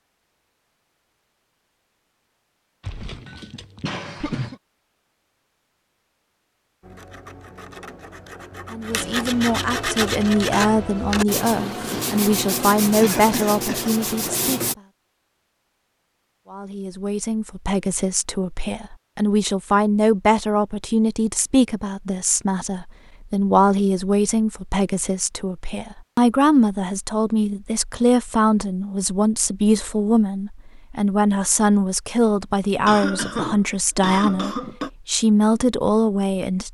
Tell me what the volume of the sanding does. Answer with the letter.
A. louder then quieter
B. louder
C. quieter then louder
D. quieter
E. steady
B.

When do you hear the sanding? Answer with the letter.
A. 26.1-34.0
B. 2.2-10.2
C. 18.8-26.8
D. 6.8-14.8
D.